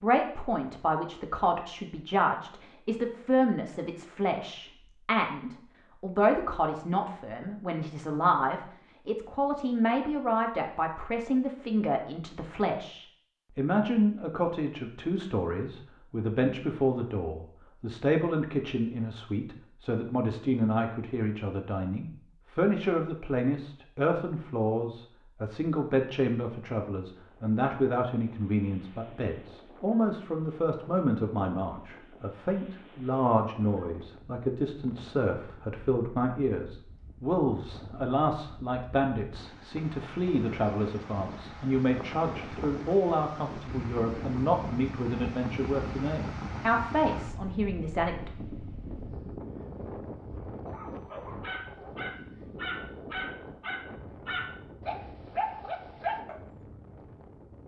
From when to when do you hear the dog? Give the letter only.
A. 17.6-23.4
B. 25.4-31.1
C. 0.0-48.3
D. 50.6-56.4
D.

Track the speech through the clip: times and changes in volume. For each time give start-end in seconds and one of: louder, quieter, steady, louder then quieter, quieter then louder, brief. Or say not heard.
0.0-48.3 steady.